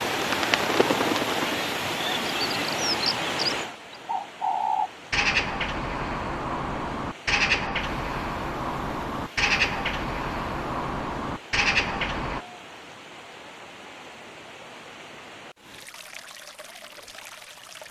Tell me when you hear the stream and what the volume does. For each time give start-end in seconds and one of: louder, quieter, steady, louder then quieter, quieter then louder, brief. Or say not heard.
0.0-17.8 quieter.